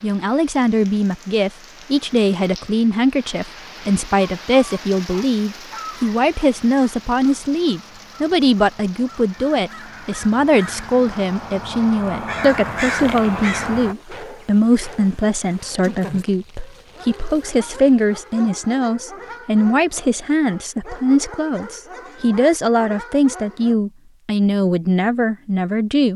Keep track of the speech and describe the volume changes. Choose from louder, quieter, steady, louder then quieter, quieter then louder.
steady.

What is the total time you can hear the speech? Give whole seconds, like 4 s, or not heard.
26 s.